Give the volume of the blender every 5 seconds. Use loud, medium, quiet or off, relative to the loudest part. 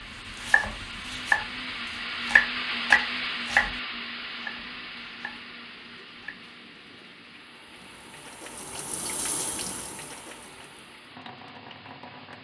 loud, quiet, quiet.